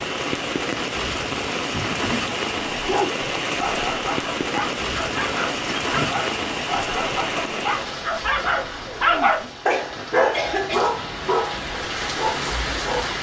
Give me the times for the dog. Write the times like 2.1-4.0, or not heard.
2.8-13.1.